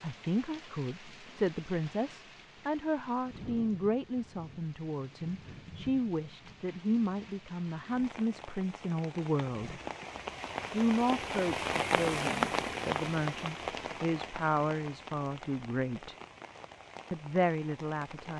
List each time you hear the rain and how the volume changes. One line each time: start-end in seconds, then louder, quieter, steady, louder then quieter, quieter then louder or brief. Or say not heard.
0.0-18.3 louder then quieter.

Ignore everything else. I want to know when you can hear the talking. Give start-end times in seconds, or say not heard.
0.0-9.8, 10.7-16.1, 17.1-18.3.